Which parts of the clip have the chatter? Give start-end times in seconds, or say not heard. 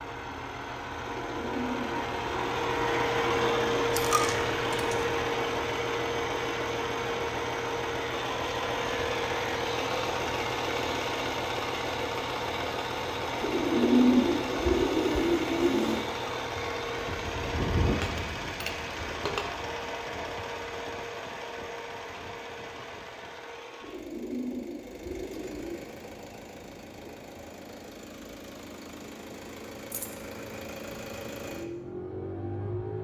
not heard.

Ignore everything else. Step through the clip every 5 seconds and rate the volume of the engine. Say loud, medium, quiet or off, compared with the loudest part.
loud, loud, loud, loud, medium, quiet, medium.